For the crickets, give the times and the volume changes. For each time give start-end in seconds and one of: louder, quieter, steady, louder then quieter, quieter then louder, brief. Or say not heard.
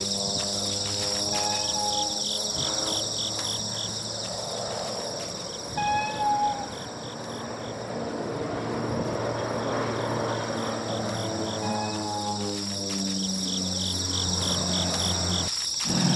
0.0-16.1 quieter then louder.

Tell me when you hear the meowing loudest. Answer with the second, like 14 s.
6 s.